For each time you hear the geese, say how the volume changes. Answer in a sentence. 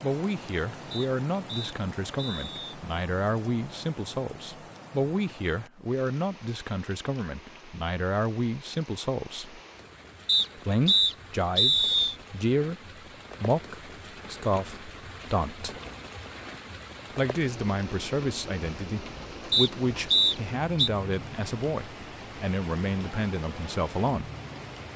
The geese can't be heard in this clip.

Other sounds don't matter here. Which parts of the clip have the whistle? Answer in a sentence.
You can hear the whistle from 0.9 to 2.8 s, from 10.2 to 12.2 s and from 19.5 to 20.9 s.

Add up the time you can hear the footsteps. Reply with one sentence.
You can't hear the footsteps here.